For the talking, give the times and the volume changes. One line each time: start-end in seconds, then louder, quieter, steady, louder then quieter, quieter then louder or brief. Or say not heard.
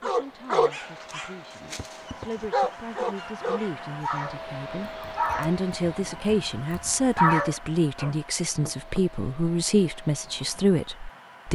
0.0-11.5 louder.